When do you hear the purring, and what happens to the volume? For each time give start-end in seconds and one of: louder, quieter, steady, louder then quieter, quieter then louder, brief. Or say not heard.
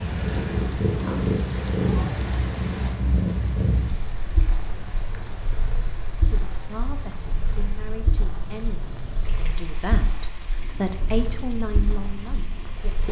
0.0-13.0 quieter.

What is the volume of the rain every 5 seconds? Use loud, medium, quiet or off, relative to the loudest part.
loud, medium, medium.